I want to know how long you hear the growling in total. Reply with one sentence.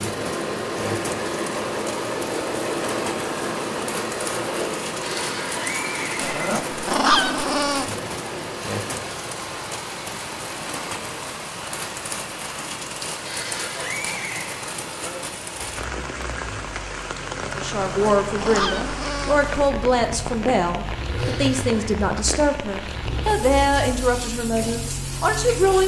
You can hear the growling for 3 seconds altogether.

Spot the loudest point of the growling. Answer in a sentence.
The loudest moment of the growling is at 7 seconds.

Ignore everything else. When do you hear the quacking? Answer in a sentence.
You can't hear the quacking here.